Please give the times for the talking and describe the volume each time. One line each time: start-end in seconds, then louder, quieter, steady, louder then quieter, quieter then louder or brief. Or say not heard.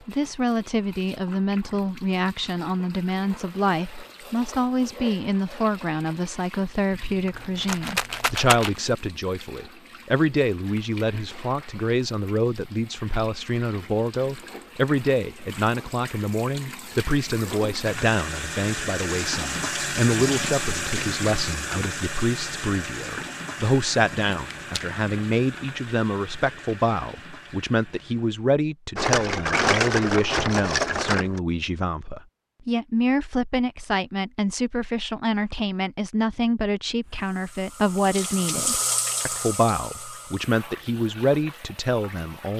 0.1-42.5 steady.